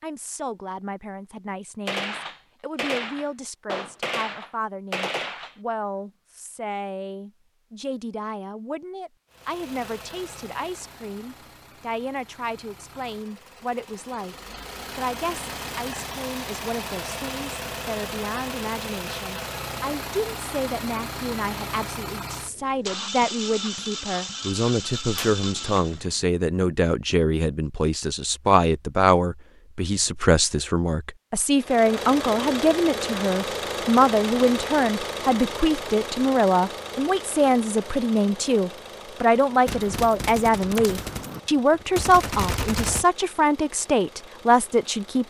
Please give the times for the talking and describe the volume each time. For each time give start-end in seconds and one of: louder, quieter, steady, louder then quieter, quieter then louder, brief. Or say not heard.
0.0-14.3 steady
14.9-45.2 louder.